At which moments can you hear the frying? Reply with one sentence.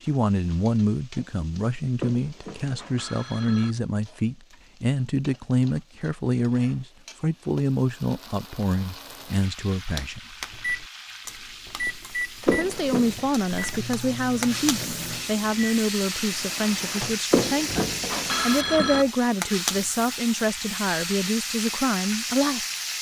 You can hear the frying from 0.0 to 22.9 s.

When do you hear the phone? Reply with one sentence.
You can hear the phone from 2.0 to 3.8 s, from 12.4 to 13.2 s and from 17.3 to 19.1 s.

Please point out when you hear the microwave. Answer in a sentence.
You can hear the microwave from 10.3 to 17.9 s.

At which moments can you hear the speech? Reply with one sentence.
You can hear the speech from 0.0 to 10.2 s and from 12.4 to 22.6 s.